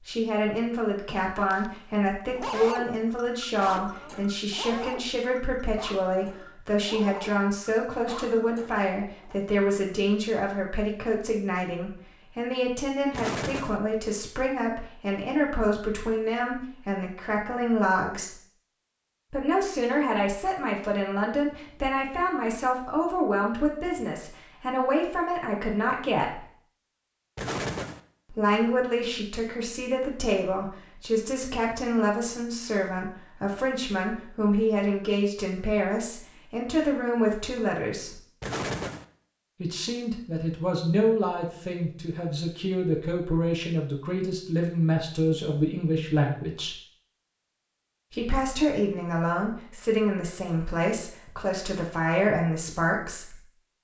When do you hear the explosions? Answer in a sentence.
The explosions can be heard from 13.1 to 13.8 s, from 27.4 to 28.0 s and from 38.4 to 39.0 s.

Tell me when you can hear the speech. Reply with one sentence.
You can hear the speech from 0.1 to 18.4 s, from 19.3 to 26.4 s, from 28.3 to 38.2 s, from 39.6 to 46.8 s and from 48.1 to 53.4 s.